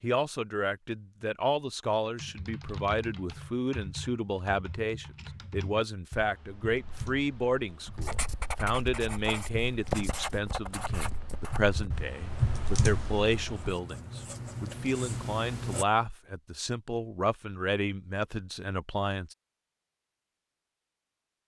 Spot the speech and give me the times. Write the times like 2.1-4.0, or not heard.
0.0-19.4.